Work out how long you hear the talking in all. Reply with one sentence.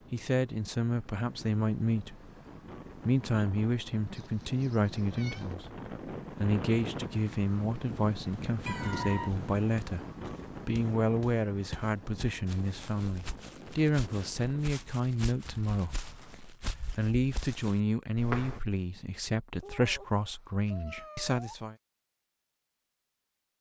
You can hear the talking for 20 seconds altogether.